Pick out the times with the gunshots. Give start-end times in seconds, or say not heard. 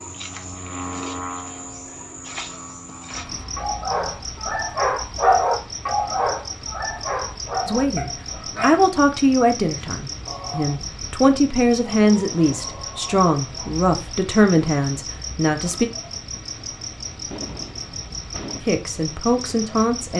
17.3-18.6.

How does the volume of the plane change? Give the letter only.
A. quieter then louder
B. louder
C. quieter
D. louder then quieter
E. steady
C.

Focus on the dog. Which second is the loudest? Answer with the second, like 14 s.
5 s.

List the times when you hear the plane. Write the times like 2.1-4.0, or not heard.
0.0-4.2.